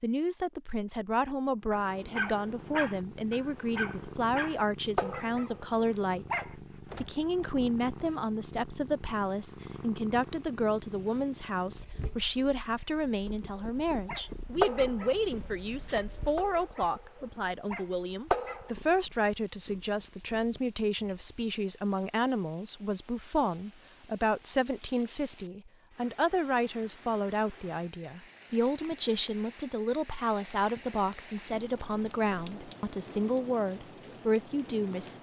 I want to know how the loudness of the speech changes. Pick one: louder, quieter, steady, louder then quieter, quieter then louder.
steady.